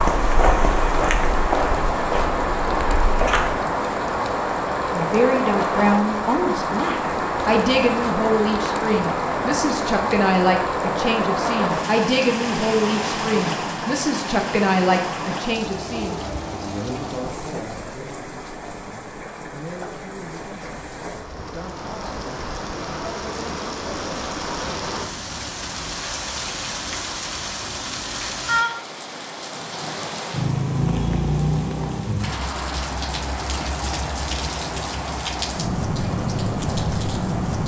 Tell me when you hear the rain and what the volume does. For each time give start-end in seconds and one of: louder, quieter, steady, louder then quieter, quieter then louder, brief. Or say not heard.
0.0-37.6 quieter then louder.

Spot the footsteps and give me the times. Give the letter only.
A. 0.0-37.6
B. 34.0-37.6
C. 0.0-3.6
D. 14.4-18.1
C.